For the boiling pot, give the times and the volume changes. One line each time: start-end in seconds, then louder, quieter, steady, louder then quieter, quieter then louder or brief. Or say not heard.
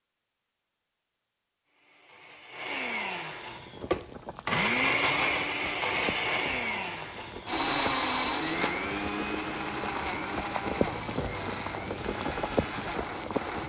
3.4-13.6 louder.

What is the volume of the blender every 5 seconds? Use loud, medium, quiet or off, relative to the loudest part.
loud, loud, medium.